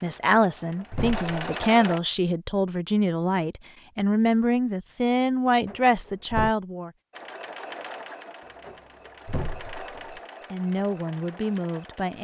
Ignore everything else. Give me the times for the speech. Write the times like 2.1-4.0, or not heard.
0.0-6.9, 10.5-12.2.